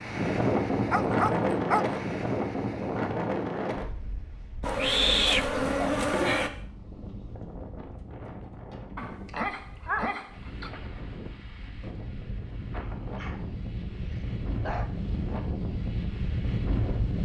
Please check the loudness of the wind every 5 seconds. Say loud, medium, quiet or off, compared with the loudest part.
loud, quiet, medium, loud.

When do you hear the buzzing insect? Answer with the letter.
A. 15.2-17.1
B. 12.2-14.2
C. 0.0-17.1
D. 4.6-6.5
D.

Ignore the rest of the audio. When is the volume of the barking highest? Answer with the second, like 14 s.
5 s.